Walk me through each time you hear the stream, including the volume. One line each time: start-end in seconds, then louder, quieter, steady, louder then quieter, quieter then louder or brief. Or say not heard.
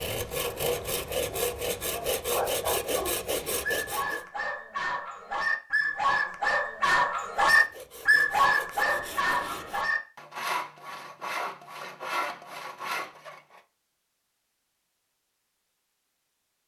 not heard.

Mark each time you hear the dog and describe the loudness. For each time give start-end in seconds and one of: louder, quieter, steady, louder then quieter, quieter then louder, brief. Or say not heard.
0.4-10.0 louder.